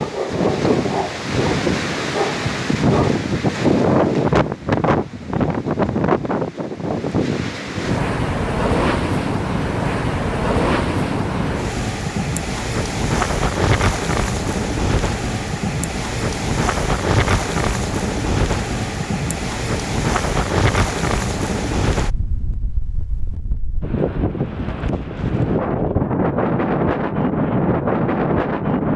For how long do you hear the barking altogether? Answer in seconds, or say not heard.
3 s.